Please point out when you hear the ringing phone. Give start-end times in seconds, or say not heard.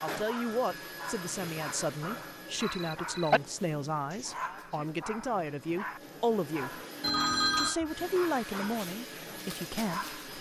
2.6-3.4, 7.0-7.8.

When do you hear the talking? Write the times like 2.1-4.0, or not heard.
0.0-6.8, 7.5-10.3.